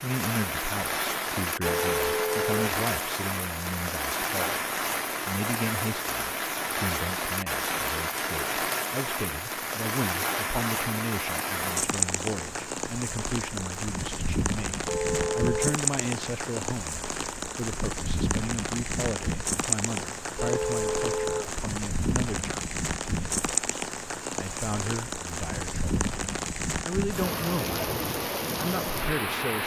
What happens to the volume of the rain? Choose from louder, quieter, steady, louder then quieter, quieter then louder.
steady.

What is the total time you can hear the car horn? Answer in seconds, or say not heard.
3 s.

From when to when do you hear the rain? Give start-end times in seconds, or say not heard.
0.0-29.6.